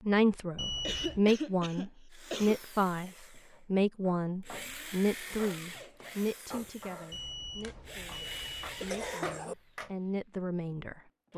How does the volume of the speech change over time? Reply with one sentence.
The loudness of the speech goes down, then up.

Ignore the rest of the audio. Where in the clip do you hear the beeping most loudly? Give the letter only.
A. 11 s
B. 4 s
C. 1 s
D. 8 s
C.